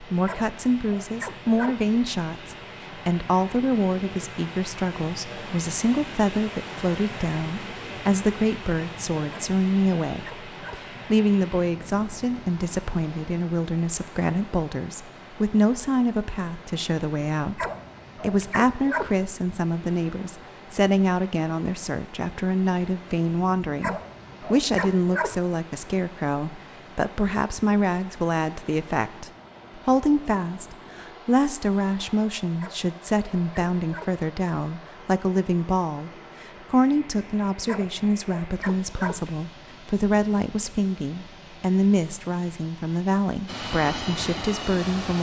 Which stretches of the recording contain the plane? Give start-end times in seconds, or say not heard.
43.5-45.1.